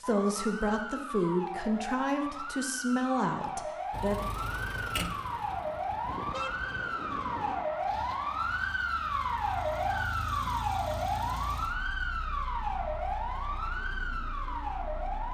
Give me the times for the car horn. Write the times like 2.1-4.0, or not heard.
6.0-7.8.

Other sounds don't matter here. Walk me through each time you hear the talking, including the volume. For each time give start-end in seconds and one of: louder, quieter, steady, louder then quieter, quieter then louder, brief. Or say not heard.
0.0-4.2 steady.